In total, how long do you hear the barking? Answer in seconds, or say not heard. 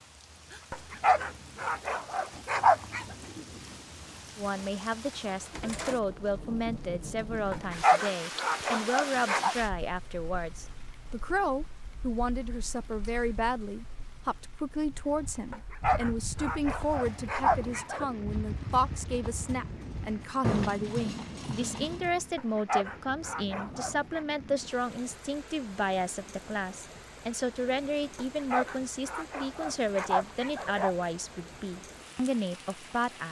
12 s.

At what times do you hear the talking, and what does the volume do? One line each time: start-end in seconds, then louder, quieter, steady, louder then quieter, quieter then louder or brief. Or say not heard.
4.3-33.2 steady.